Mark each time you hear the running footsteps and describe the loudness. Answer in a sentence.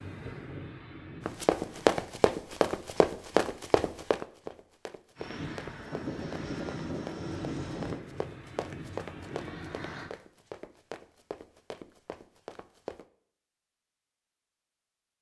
The running footsteps can be heard from 1.2 to 13.1 s, getting quieter.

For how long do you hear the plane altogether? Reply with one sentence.
The plane can be heard for 7 seconds in total.